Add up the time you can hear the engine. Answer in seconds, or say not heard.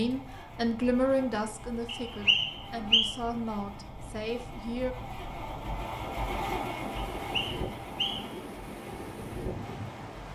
10 s.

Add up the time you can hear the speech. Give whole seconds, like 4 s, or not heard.
5 s.